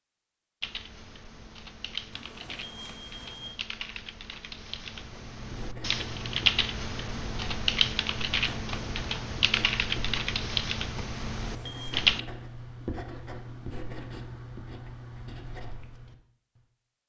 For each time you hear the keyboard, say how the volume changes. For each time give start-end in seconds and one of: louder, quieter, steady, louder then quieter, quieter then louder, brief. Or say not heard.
0.6-12.2 louder.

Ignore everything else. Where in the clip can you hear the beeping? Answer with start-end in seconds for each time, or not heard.
2.1-3.5, 11.3-12.0.